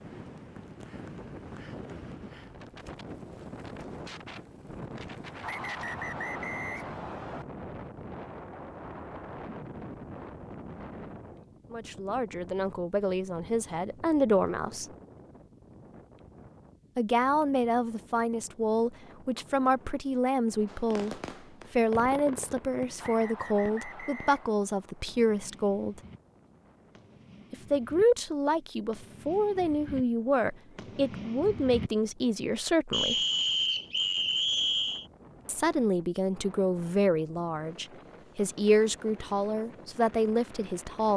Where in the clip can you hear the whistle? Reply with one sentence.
You can hear the whistle from 5.4 to 7.5 s, from 23.0 to 24.6 s and from 32.9 to 35.0 s.